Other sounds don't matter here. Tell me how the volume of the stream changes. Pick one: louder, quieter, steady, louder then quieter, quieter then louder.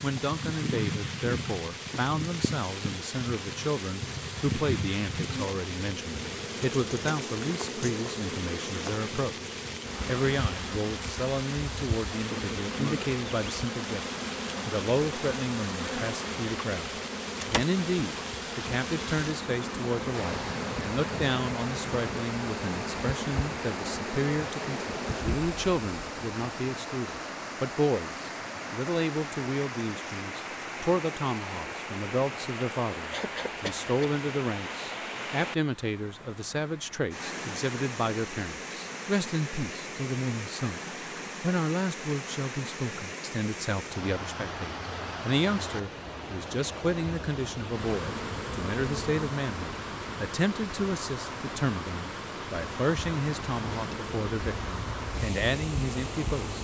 steady.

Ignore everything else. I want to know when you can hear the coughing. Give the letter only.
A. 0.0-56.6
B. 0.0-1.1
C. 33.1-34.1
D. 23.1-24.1
C.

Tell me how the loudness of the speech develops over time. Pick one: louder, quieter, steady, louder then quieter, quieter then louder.
steady.